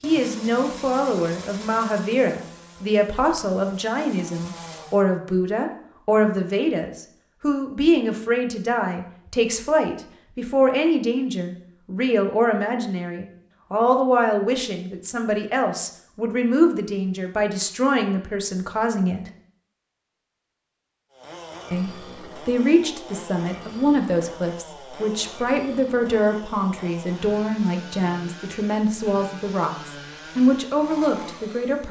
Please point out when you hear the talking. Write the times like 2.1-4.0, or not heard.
0.0-19.2, 21.7-31.8.